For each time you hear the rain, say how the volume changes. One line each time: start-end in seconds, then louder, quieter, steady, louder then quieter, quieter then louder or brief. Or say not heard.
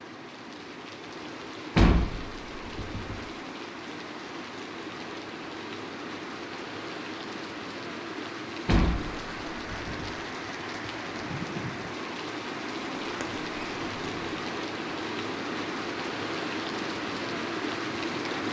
0.0-18.4 louder.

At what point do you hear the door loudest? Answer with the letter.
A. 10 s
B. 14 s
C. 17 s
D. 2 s
D.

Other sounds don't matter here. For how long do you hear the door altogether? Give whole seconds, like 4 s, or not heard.
4 s.